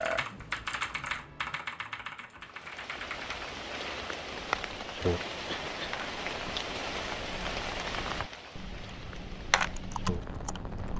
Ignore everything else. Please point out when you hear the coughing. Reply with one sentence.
The coughing can be heard from 5.5 to 6.0 s.